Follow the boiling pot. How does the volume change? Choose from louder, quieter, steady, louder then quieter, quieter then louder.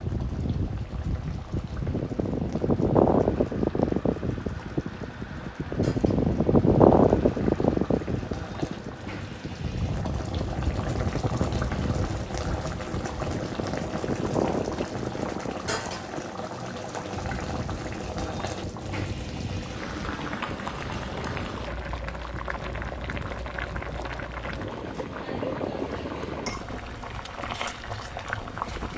louder.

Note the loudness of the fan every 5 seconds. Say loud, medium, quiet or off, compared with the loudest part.
loud, loud, medium, quiet, quiet, quiet.